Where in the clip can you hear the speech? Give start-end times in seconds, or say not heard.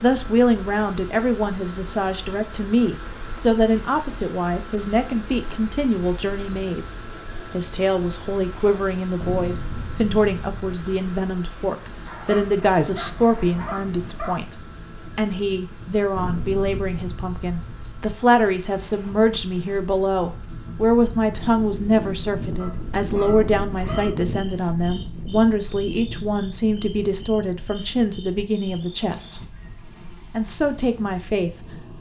0.0-6.9, 7.5-14.6, 15.2-29.4, 30.3-31.9.